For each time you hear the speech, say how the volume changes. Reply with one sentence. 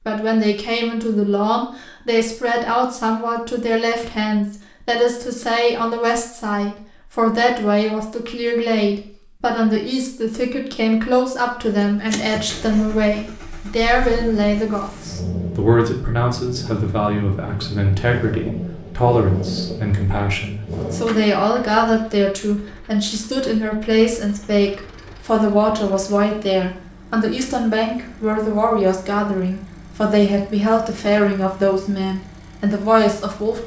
The speech can be heard from 0.1 to 33.6 s, at a steady volume.